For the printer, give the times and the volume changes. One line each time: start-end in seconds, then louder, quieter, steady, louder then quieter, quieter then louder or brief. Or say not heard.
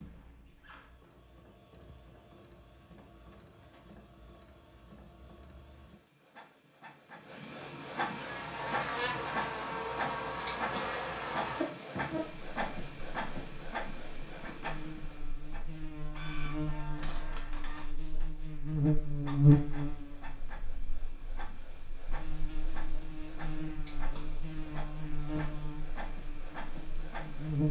0.0-27.6 louder then quieter.